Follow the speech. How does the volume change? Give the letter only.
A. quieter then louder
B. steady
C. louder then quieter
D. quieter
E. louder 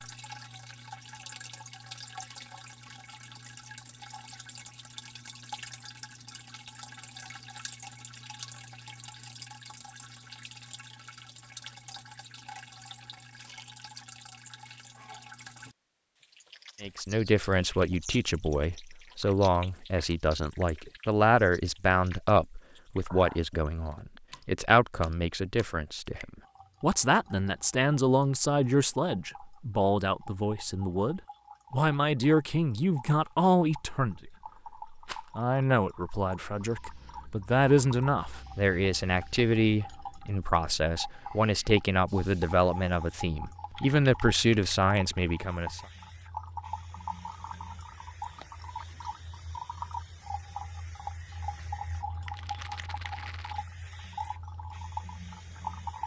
B.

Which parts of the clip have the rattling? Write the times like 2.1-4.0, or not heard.
13.3-13.9, 35.0-35.5, 52.4-53.6.